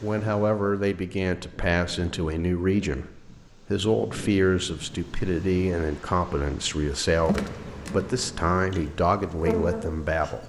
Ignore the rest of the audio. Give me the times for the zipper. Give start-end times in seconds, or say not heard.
not heard.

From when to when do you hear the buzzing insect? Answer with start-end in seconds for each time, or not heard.
7.1-10.4.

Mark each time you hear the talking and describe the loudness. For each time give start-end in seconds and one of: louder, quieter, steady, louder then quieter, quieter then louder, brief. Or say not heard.
0.0-10.4 steady.